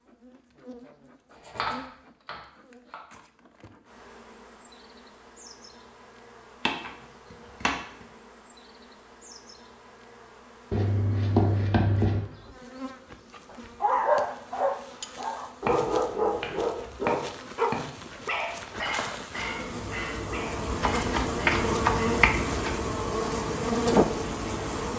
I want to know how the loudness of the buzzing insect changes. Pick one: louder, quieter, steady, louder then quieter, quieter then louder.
louder.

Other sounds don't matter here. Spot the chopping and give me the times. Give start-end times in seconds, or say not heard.
1.3-3.0, 6.6-8.1, 10.7-12.2, 15.7-17.9, 20.8-22.8.